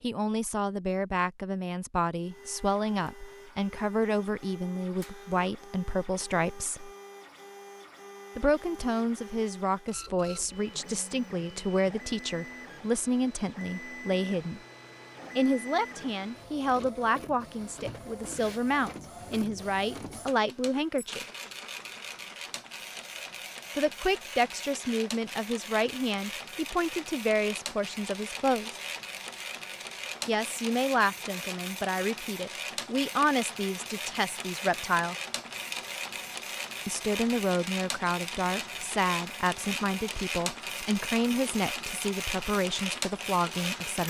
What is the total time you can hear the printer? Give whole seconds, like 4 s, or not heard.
42 s.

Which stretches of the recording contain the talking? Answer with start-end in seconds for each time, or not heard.
0.0-6.9, 8.3-14.6, 15.3-21.2, 23.8-28.7, 30.2-35.1, 36.9-44.0.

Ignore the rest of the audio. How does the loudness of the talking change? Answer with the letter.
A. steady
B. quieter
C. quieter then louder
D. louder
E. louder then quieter
A.